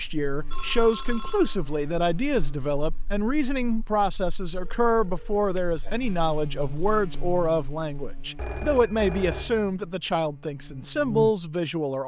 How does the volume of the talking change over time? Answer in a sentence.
The volume of the talking stays about the same.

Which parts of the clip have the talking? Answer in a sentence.
The talking can be heard from 0.0 to 12.0 s.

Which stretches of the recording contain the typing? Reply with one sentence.
You can't hear the typing here.